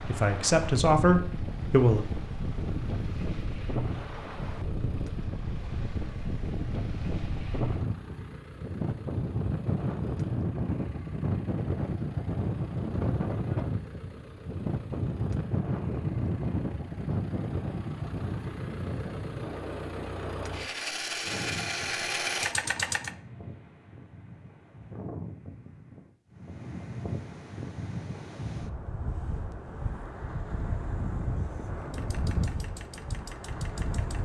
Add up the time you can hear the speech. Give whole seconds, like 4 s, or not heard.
2 s.